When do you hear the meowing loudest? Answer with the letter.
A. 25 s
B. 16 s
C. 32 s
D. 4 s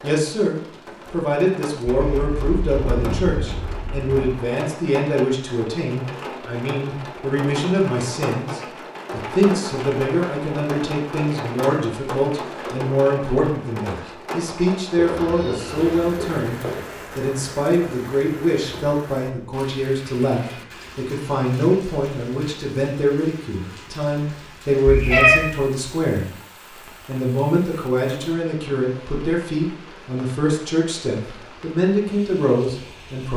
A.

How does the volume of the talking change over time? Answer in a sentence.
The volume of the talking stays about the same.